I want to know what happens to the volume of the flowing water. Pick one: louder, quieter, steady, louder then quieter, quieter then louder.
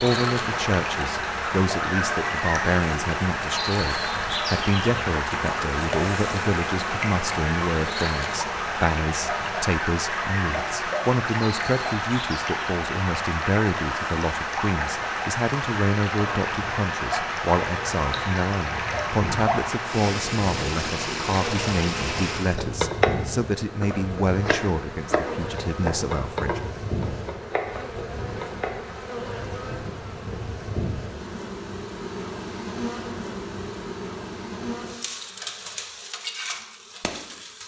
steady.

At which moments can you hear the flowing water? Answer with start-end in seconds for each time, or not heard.
0.0-22.6.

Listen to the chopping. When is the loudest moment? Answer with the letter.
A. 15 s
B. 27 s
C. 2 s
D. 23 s
D.